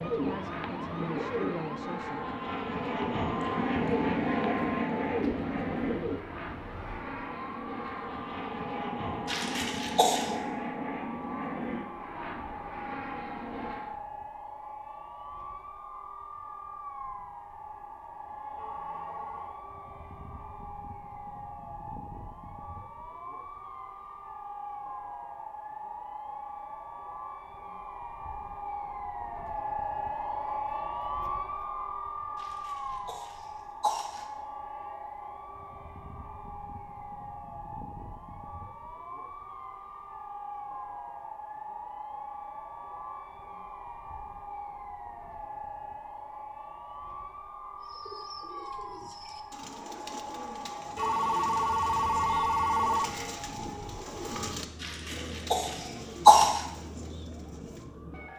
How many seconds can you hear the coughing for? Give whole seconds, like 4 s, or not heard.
5 s.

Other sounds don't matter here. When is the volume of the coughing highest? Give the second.
56 s.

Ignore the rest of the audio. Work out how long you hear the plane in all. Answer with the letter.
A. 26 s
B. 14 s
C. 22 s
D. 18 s
B.